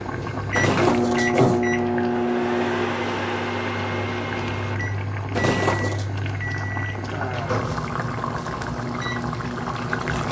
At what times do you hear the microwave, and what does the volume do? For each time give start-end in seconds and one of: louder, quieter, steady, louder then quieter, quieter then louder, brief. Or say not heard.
0.2-10.2 quieter.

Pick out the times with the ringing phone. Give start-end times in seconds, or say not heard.
0.5-1.6, 5.3-6.0.